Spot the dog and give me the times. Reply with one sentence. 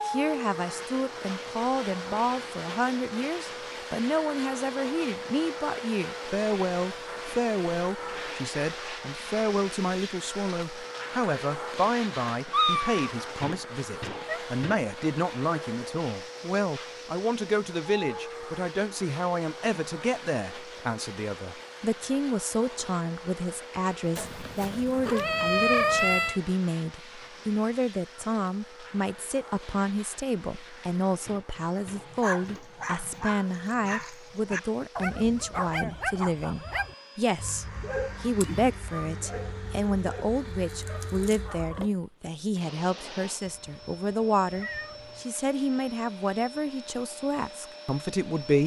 The dog can be heard from 31.6 to 41.9 s.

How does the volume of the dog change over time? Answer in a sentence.
The volume of the dog goes down.